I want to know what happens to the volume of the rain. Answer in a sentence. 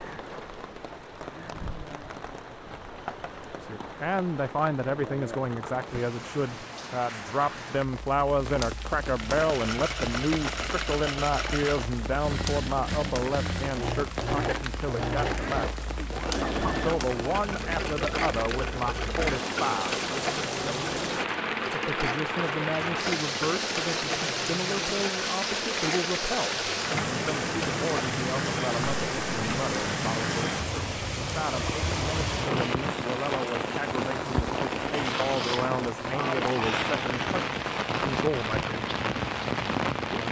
The loudness of the rain goes up.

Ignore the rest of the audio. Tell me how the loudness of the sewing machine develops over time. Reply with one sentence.
The loudness of the sewing machine stays about the same.